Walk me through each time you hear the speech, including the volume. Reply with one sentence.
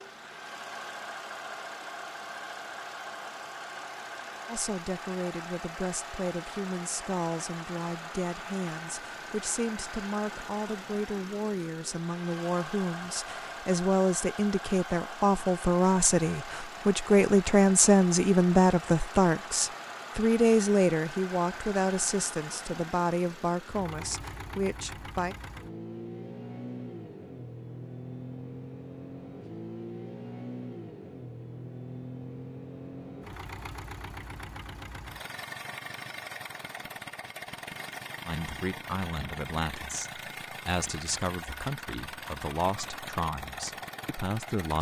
The speech can be heard from 4.5 to 25.4 s, getting louder then quieter; and from 38.2 to 44.7 s, at a steady volume.